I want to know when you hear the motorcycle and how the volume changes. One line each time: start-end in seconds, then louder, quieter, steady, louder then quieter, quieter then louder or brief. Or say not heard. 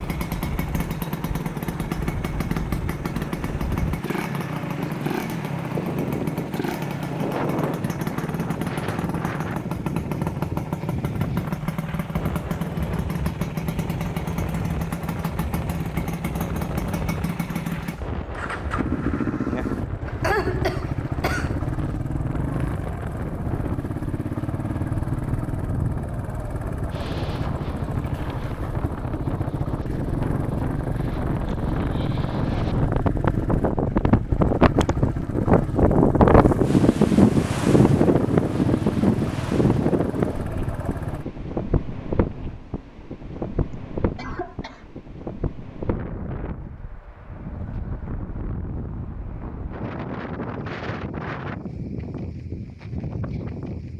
0.0-41.2 steady.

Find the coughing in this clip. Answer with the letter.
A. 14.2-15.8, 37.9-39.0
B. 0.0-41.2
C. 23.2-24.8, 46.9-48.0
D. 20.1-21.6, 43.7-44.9
D.